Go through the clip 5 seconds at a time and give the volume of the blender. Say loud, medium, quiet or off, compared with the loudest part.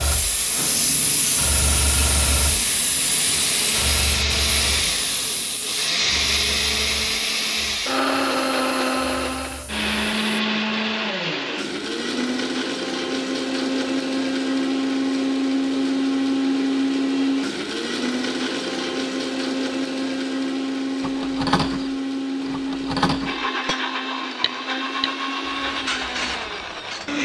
loud, loud, loud, loud, loud, medium.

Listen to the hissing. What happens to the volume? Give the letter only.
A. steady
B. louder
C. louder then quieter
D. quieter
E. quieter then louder
D.